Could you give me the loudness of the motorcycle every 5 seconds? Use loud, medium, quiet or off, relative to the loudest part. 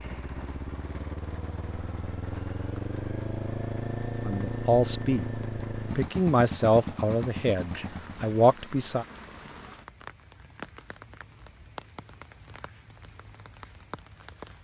loud, loud, off.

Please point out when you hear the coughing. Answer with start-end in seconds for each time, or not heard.
not heard.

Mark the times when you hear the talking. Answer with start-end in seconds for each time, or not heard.
4.2-5.3, 6.0-9.1.